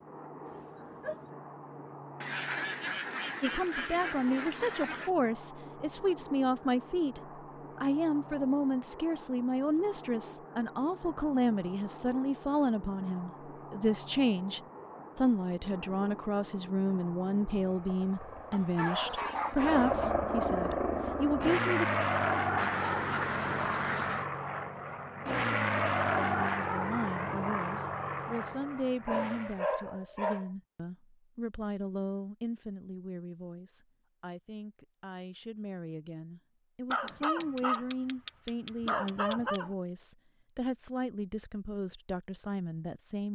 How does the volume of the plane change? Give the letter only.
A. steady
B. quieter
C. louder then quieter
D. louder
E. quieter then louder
D.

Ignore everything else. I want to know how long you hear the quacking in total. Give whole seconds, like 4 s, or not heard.
5 s.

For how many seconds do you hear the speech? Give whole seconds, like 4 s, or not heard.
36 s.